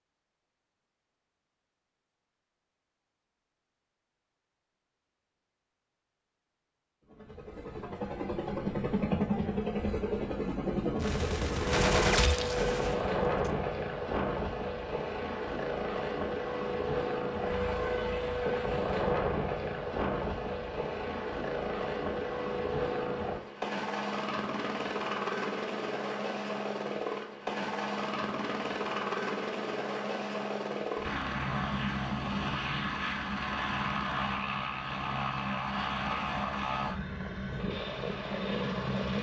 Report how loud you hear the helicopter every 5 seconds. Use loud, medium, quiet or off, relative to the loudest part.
off, loud, loud, loud, loud, loud, loud, loud.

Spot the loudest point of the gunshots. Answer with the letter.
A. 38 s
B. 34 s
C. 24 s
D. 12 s
D.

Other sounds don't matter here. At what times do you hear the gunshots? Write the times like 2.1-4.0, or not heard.
10.9-13.5.